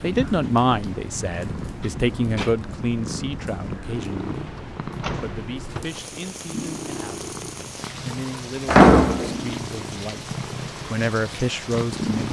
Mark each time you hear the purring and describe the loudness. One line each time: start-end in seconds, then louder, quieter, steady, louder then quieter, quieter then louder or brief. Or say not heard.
0.0-12.2 steady.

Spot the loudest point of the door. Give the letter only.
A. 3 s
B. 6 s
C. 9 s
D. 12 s
C.